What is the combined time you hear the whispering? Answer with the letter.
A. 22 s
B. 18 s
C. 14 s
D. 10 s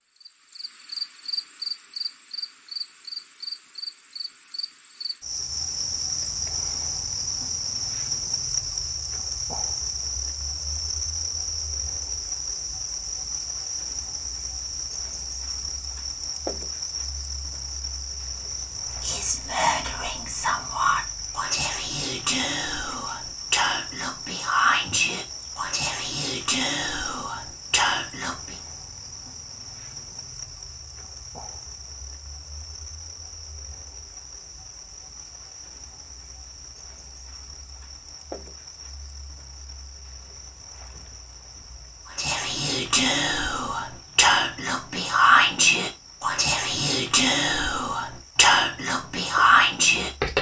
B.